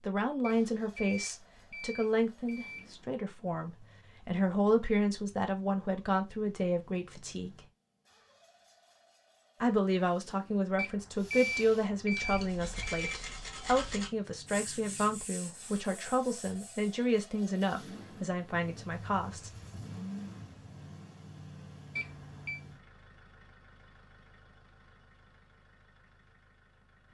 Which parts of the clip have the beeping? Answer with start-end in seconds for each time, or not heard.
0.4-3.2, 10.8-13.2, 21.9-22.6.